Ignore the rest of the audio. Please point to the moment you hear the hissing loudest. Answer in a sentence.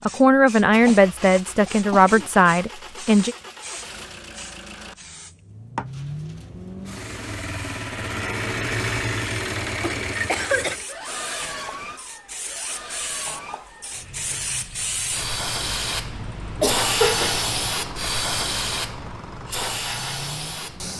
The loudest moment of the hissing is at 17 seconds.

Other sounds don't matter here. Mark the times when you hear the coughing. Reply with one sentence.
You can hear the coughing from 0.7 to 2.3 s, from 9.8 to 10.8 s and from 16.6 to 17.4 s.